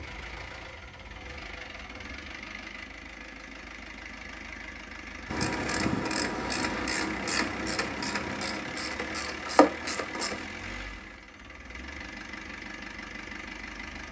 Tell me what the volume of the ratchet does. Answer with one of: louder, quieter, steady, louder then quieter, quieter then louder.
quieter then louder.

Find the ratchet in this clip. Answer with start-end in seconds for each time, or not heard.
5.2-10.4.